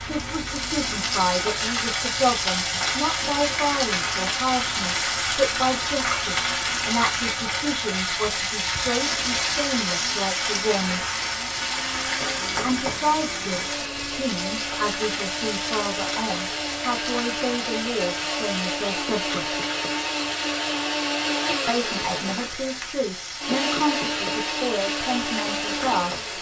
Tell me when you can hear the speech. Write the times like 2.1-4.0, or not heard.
0.1-11.1, 12.6-19.5, 21.6-26.3.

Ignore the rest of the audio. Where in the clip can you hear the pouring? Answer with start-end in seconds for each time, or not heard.
not heard.